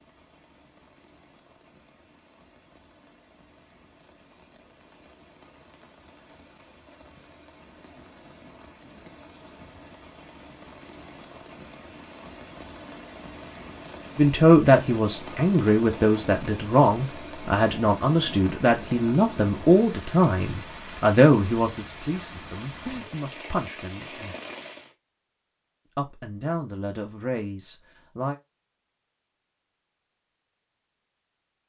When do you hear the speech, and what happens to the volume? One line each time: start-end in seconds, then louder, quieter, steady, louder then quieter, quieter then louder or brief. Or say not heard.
14.2-24.4 quieter
25.9-28.4 brief.